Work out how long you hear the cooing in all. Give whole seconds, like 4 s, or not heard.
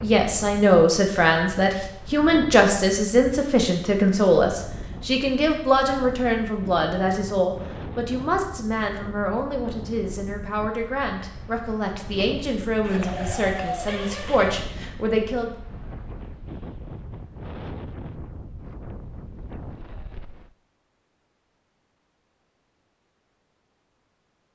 2 s.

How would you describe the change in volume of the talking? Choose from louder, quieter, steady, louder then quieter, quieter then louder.
quieter.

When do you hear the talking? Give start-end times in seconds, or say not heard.
0.0-15.5.